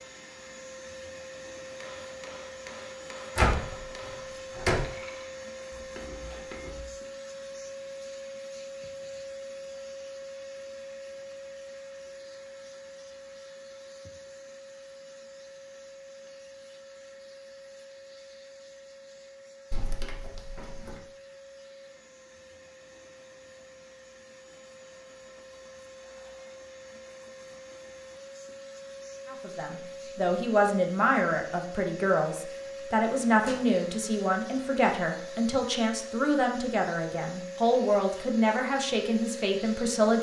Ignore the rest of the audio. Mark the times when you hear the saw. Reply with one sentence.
You can't hear the saw here.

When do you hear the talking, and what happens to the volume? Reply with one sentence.
The talking can be heard from 29.3 to 40.1 s, at a steady volume.